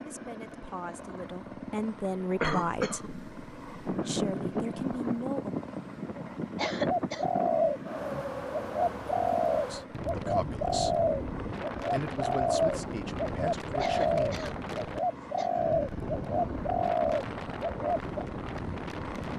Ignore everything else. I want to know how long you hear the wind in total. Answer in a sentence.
The wind can be heard for 16 seconds in total.